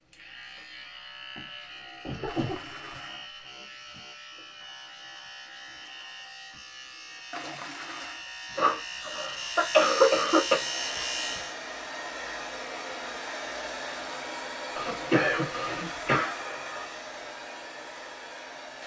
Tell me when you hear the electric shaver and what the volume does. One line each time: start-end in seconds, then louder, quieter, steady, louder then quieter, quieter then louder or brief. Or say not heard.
0.0-11.6 louder.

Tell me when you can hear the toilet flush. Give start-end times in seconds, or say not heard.
2.2-3.2, 7.3-8.2, 14.8-16.9.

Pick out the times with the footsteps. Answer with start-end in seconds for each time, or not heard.
not heard.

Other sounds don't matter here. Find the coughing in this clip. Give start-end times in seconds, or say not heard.
2.0-2.9, 8.6-10.6, 14.8-16.4.